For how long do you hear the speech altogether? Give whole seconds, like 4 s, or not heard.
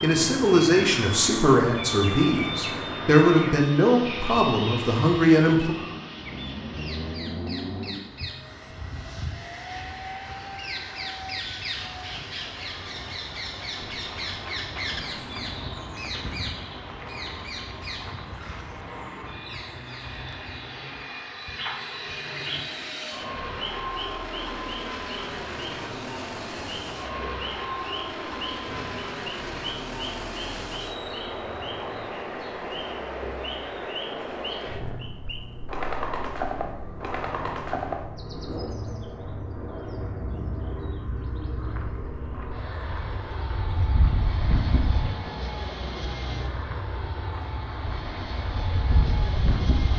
6 s.